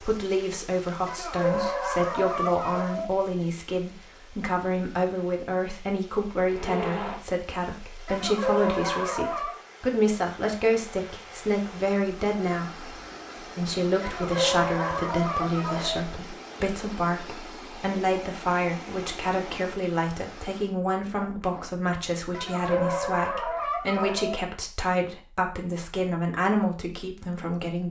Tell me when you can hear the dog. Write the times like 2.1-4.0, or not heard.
1.1-3.1, 8.1-9.6, 14.0-16.0, 22.3-24.4.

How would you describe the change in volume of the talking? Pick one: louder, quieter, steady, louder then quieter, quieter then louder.
steady.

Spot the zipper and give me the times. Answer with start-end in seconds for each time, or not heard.
6.5-7.2, 21.1-21.8.